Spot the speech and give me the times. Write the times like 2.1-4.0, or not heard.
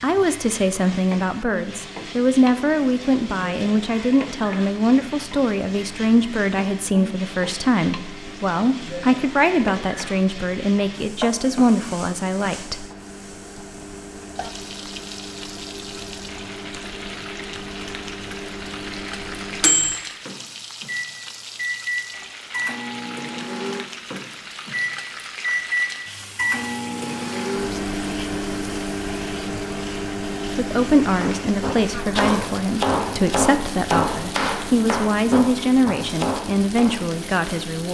0.0-12.8, 30.6-37.8.